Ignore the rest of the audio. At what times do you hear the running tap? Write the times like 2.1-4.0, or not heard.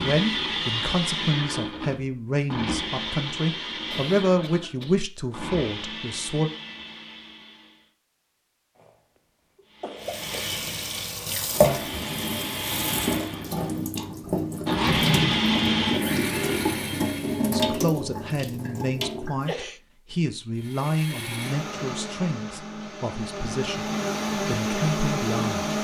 10.0-19.5.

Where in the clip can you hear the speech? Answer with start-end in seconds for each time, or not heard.
0.0-6.5, 17.5-23.9, 24.4-25.6.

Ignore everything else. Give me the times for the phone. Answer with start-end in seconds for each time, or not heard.
not heard.